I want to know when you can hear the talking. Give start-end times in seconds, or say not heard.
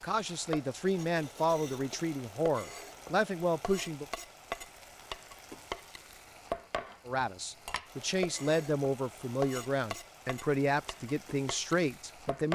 0.0-4.0, 7.0-12.5.